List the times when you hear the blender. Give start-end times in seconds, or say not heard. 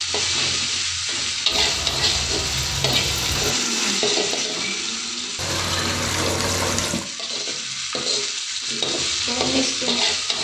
3.0-5.4.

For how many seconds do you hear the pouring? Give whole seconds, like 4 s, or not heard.
4 s.